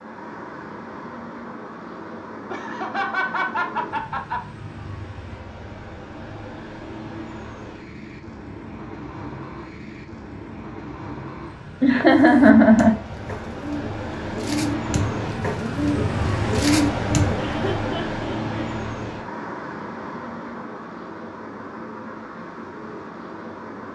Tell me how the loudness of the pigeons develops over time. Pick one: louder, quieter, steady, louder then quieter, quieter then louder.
louder.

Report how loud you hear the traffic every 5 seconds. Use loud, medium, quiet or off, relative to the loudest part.
medium, medium, medium, loud, medium.